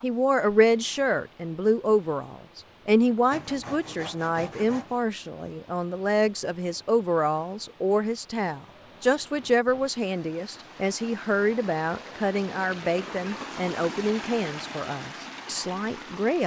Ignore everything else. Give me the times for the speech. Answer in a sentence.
You can hear the speech from 0.0 to 16.4 s.